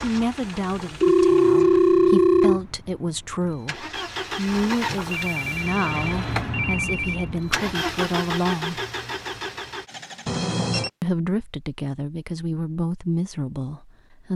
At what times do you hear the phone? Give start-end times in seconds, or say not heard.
1.0-2.6, 5.1-7.3, 10.2-10.9.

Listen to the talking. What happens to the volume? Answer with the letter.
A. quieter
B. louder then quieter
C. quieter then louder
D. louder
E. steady
E.